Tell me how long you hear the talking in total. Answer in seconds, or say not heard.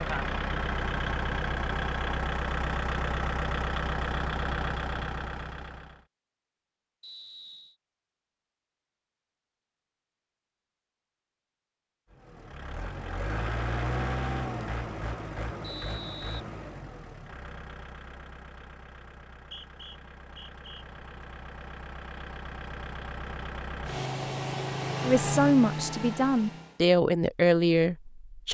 3 s.